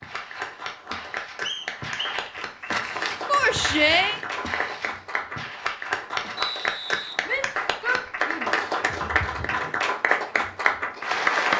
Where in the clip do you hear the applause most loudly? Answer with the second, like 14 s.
11 s.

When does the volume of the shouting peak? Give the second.
4 s.